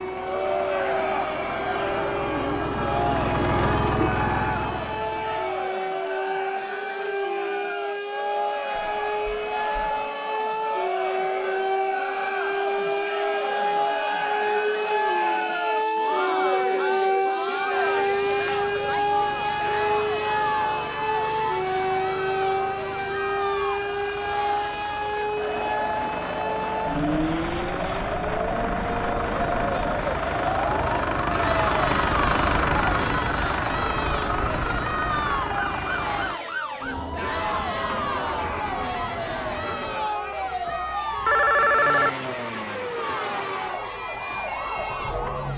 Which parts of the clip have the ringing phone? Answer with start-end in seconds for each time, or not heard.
8.8-9.8, 40.6-42.1.